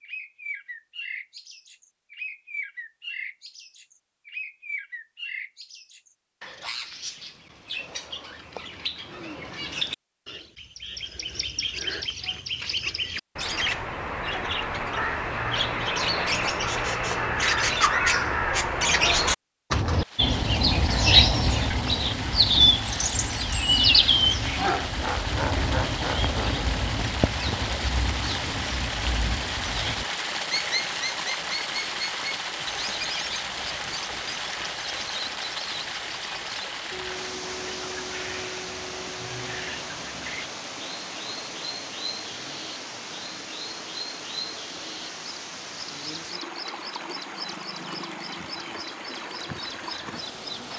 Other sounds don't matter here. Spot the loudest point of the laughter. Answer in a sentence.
The loudest moment of the laughter is at 25 seconds.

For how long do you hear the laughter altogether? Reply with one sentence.
The laughter can be heard for 2 seconds in total.